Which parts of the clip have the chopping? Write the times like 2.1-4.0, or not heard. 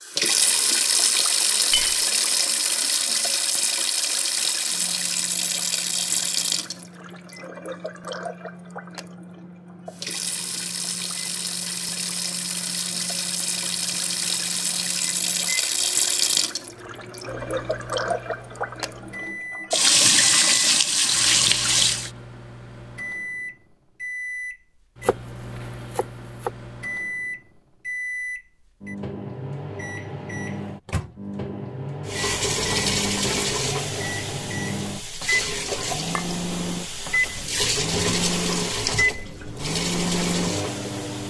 25.0-26.5.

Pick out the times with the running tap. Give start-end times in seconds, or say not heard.
0.0-22.1, 32.0-41.2.